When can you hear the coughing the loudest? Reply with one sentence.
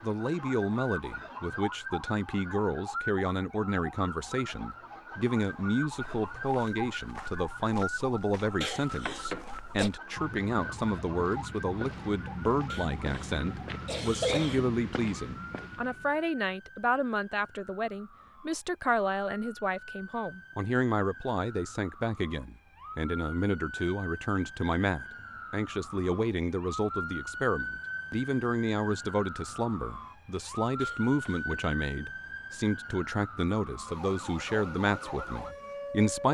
The volume of the coughing peaks at 14 seconds.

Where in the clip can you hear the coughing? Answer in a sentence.
The coughing can be heard from 8.6 to 9.9 s, from 12.7 to 14.7 s and from 30.8 to 31.6 s.